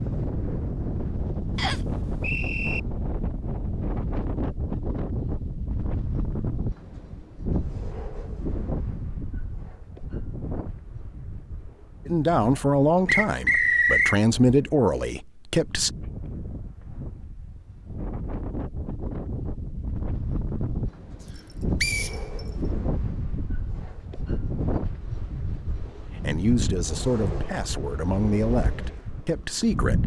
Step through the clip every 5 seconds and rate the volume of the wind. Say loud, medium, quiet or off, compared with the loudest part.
loud, loud, medium, medium, loud, loud.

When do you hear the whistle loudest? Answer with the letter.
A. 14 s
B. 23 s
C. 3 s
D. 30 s
A.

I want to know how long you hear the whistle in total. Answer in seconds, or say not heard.
3 s.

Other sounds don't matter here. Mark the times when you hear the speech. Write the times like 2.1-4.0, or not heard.
12.1-15.9, 26.0-30.0.